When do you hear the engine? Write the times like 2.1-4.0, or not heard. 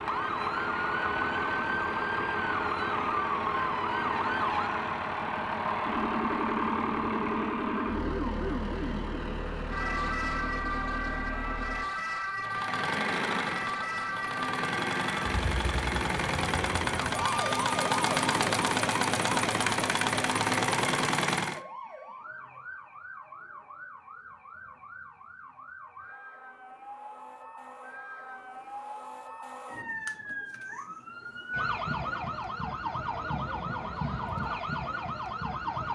0.0-21.6.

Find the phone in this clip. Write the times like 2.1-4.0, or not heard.
not heard.